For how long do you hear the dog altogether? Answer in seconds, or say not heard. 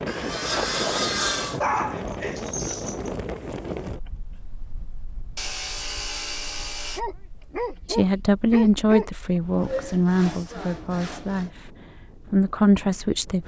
4 s.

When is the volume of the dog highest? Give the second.
2 s.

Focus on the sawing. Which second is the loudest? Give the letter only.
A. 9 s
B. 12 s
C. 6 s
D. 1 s
D.